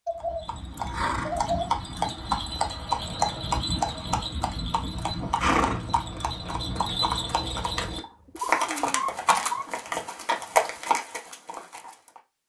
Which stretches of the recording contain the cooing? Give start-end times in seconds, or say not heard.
0.1-1.7, 8.0-9.8.